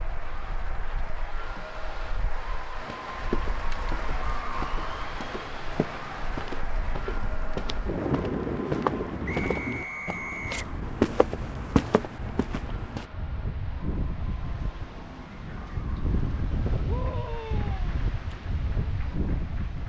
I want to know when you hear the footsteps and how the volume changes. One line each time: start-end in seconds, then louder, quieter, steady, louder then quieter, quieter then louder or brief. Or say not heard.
2.8-13.1 louder.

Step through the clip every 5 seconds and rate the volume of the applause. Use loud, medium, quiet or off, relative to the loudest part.
loud, loud, medium, quiet.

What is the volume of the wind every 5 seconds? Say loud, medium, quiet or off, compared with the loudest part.
quiet, loud, medium, loud.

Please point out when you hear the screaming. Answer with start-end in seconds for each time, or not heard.
16.9-17.9.